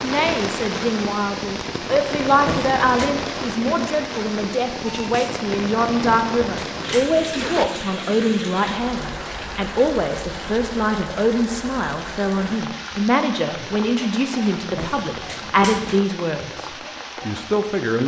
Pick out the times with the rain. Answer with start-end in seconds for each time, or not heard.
0.0-18.0.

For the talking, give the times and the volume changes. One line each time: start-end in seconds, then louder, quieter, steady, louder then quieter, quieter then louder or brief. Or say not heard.
0.0-18.0 steady.